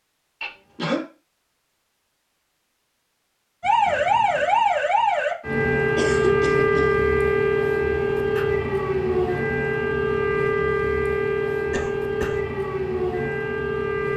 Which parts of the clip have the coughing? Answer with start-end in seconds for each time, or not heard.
0.4-1.0, 6.0-7.0, 11.7-12.4.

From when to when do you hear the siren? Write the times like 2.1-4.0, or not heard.
3.6-14.1.